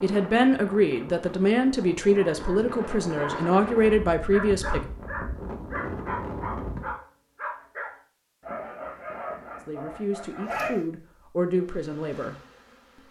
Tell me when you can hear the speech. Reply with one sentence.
The speech can be heard from 0.0 to 4.8 s and from 9.6 to 12.3 s.